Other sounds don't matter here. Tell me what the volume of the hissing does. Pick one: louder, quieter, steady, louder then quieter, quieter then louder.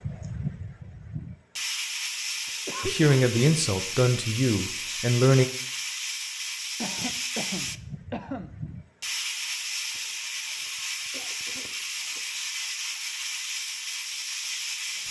steady.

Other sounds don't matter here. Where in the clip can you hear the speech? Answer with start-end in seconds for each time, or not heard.
2.8-5.5.